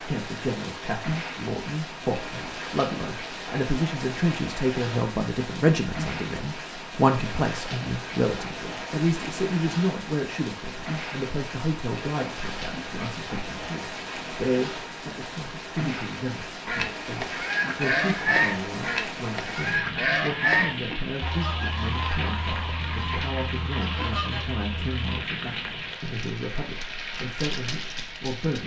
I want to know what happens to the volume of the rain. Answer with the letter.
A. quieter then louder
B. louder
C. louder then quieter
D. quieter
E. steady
E.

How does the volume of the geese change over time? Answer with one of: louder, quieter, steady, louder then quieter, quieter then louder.
quieter.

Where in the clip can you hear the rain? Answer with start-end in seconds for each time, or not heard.
0.0-28.6.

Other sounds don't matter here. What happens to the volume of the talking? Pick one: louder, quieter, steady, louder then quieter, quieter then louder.
quieter.